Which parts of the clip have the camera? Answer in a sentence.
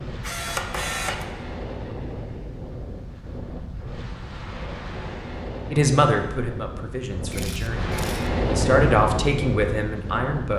You can hear the camera from 0.2 to 1.2 s and from 7.3 to 8.3 s.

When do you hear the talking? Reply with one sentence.
The talking can be heard from 5.7 to 10.5 s.